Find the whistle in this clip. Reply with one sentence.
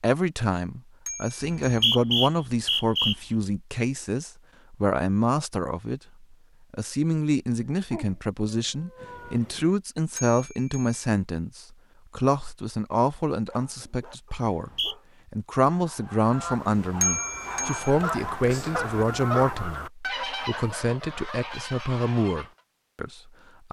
You can hear the whistle from 1.4 to 3.1 s and from 14.3 to 14.9 s.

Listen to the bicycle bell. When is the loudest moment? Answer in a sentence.
The volume of the bicycle bell peaks at 17 seconds.